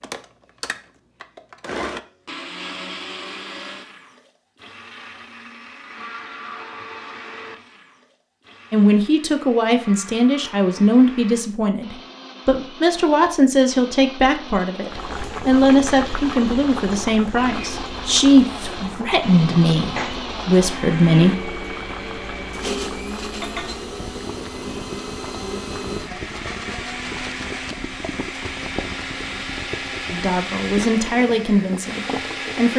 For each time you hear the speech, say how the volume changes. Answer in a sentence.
The speech can be heard from 8.7 to 21.6 s, at a steady volume; and briefly from 30.1 to 32.7 s.